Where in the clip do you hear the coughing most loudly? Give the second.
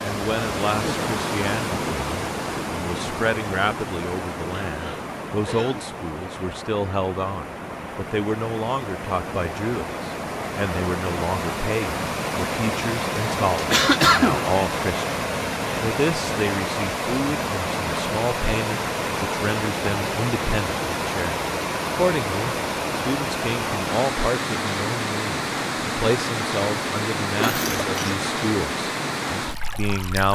14 s.